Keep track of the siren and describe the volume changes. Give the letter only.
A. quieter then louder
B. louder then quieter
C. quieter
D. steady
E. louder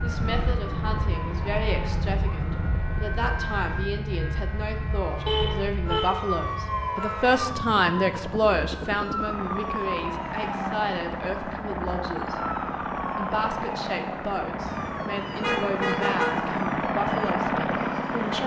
C.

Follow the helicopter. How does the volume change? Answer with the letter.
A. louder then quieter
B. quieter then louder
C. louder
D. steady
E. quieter
C.